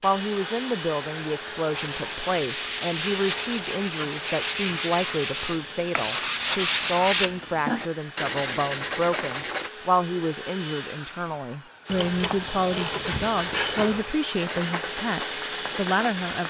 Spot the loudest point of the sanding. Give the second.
7 s.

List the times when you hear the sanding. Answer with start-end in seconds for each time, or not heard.
1.7-9.7, 13.0-16.4.